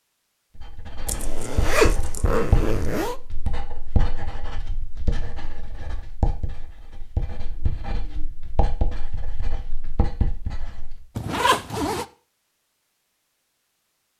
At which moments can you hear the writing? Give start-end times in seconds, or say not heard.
0.6-11.1.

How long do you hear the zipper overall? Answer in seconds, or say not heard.
3 s.